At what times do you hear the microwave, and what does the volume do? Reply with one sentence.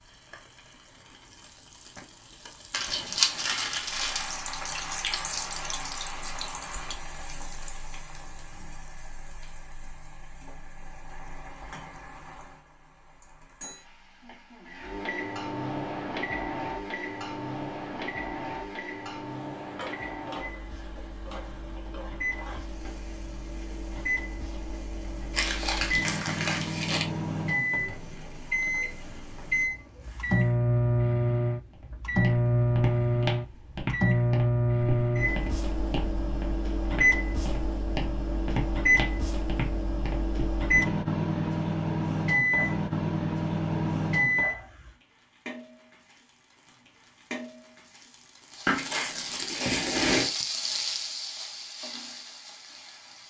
You can hear the microwave from 14.7 to 44.9 s, getting louder.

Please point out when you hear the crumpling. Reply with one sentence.
The crumpling can be heard from 2.7 to 4.3 s, from 25.3 to 27.1 s and from 48.6 to 50.3 s.